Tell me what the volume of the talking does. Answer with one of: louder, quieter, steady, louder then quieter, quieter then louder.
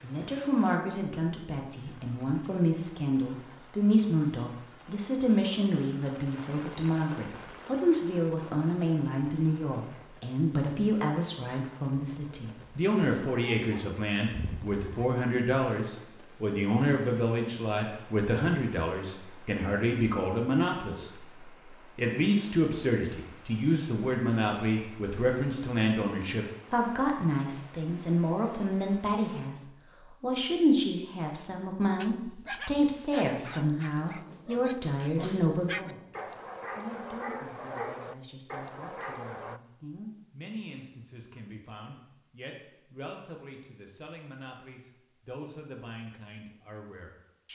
quieter.